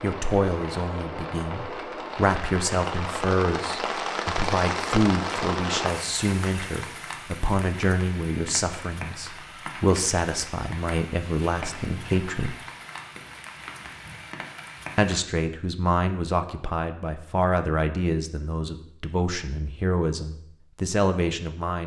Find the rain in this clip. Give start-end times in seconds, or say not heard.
0.0-15.2.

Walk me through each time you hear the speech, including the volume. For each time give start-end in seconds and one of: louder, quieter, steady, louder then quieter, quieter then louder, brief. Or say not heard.
0.0-12.6 steady
14.9-21.8 steady.